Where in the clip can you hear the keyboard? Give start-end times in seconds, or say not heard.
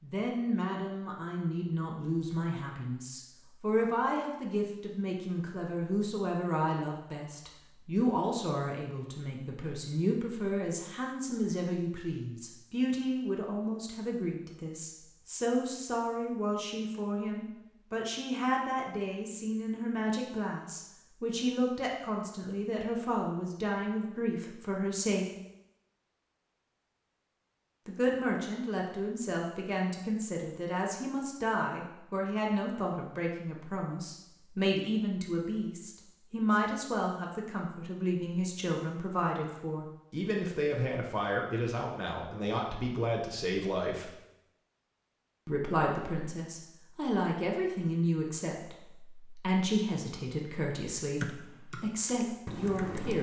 51.2-53.1.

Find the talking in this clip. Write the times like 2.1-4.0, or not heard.
0.0-25.2, 27.9-44.1, 45.5-53.1.